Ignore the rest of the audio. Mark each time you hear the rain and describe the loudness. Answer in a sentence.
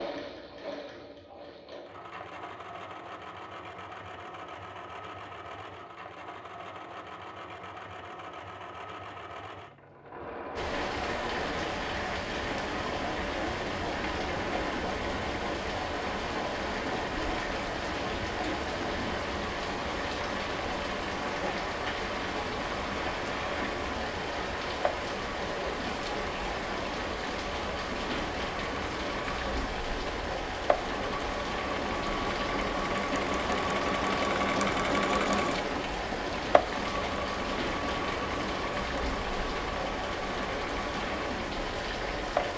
The rain can be heard from 10.6 to 42.5 s, at a steady volume.